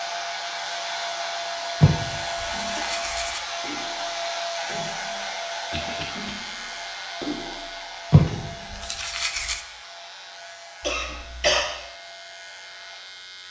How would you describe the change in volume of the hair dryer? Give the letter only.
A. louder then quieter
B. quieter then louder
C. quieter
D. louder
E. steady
C.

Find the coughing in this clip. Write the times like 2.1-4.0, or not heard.
2.1-2.9, 5.7-6.3, 10.8-11.6.